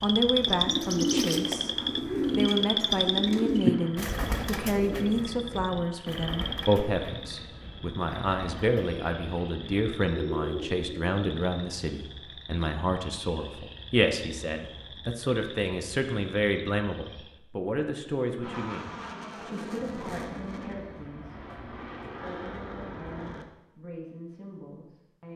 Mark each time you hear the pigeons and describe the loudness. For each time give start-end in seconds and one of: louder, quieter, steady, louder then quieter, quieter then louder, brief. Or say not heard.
0.4-11.1 quieter then louder.